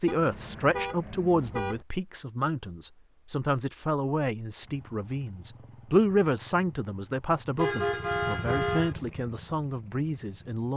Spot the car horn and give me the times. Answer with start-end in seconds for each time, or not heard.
0.1-1.9, 7.5-8.9.